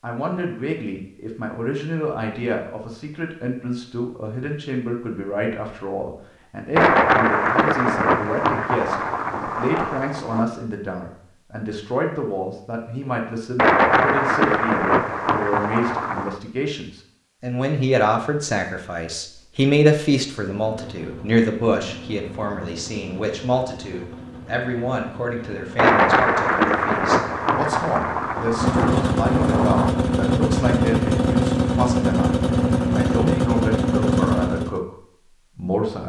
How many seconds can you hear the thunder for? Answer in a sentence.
The thunder can be heard for 11 seconds in total.